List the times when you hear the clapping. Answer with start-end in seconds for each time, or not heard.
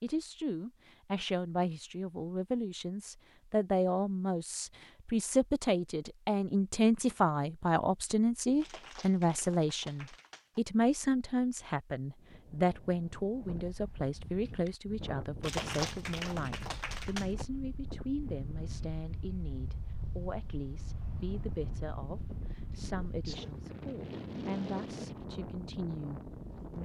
8.6-10.6, 15.4-17.4.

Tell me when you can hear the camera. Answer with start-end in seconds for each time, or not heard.
not heard.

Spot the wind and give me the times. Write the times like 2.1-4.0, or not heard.
12.2-26.7.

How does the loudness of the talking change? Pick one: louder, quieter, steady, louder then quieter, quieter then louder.
quieter.